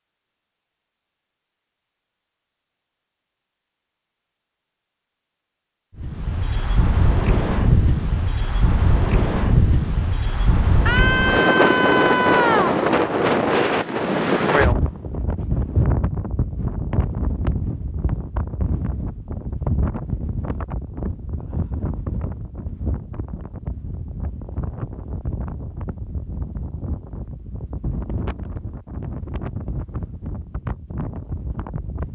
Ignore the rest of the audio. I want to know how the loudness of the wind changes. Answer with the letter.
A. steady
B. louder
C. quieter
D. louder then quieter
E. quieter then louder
C.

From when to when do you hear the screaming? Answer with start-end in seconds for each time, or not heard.
10.8-12.8.